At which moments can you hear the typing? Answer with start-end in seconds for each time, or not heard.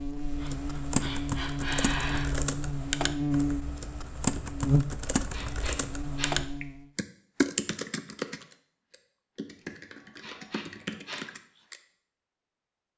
0.2-11.8.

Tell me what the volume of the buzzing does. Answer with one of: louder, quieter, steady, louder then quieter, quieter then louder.
louder then quieter.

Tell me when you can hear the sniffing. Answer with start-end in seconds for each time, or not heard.
0.4-2.3, 5.2-6.3, 9.9-11.3.